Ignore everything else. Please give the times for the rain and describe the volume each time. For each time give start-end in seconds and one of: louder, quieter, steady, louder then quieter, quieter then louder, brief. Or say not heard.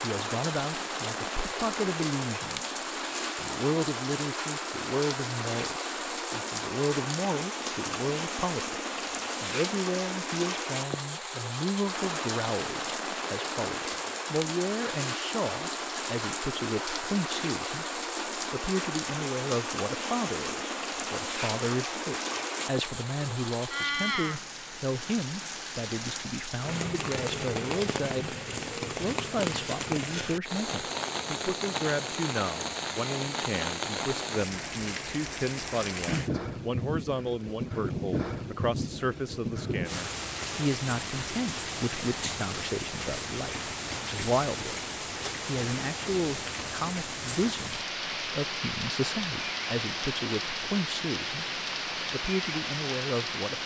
0.0-53.6 steady.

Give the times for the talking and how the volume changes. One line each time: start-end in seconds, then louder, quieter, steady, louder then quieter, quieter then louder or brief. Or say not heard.
0.0-2.8 brief
3.4-44.9 steady
45.5-53.6 steady.